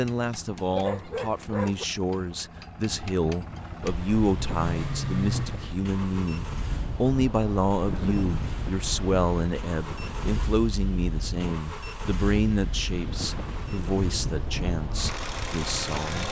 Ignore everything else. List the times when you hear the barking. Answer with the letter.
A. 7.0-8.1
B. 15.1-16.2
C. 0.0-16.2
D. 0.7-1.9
D.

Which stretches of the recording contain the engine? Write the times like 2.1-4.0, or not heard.
0.0-16.2.